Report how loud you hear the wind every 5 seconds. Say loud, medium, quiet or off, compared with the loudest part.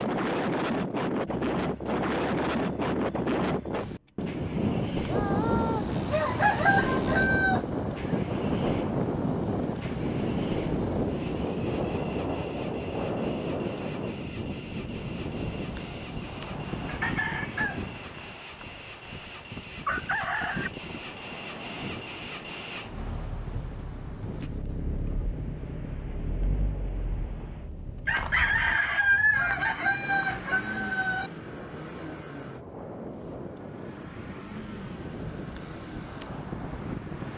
loud, loud, loud, medium, quiet, quiet, quiet, medium.